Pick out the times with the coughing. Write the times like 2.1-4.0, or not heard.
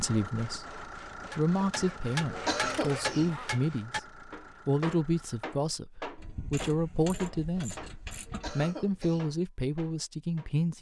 1.6-3.3, 7.5-9.3.